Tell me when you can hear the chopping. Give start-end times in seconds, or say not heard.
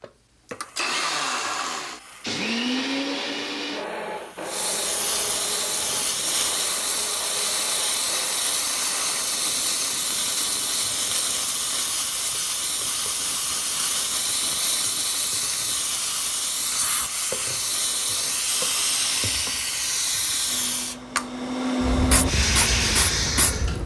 not heard.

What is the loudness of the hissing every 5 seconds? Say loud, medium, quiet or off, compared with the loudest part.
medium, loud, loud, loud, loud.